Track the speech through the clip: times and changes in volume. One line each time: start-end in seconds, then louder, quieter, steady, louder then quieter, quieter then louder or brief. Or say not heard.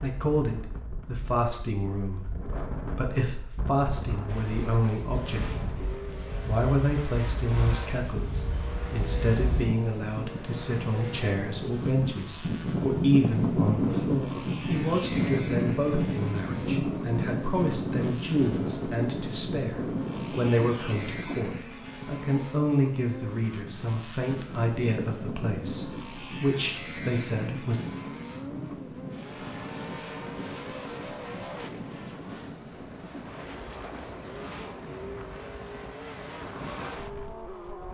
0.0-5.7 steady
6.5-27.8 steady.